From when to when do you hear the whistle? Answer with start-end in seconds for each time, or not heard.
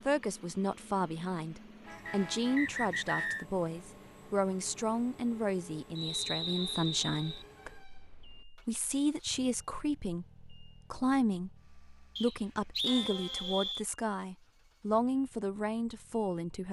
2.0-3.5, 6.0-7.5, 12.2-13.8.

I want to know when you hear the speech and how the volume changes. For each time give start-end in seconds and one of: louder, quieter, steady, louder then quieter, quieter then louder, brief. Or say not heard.
0.1-16.6 steady.